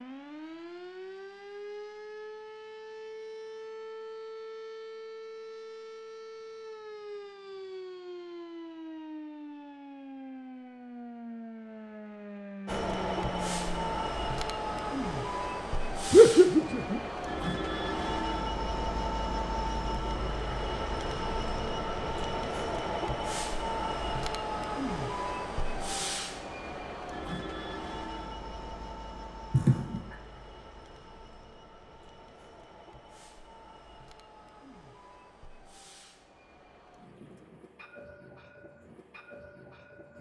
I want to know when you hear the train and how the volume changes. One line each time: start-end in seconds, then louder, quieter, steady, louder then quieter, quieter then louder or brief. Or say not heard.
12.7-40.1 quieter.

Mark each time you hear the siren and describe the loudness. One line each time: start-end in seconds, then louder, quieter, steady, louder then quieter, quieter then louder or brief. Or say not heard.
0.0-13.8 steady.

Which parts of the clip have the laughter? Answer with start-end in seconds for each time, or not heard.
16.1-17.0, 29.5-30.1.